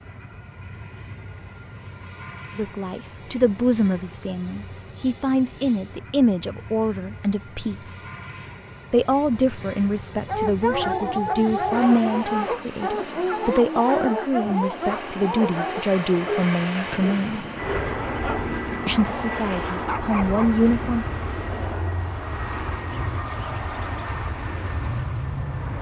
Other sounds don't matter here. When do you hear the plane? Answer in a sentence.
You can hear the plane from 0.0 to 25.7 s.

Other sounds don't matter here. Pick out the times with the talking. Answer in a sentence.
You can hear the talking from 2.5 to 8.0 s, from 8.9 to 17.4 s and from 18.9 to 21.1 s.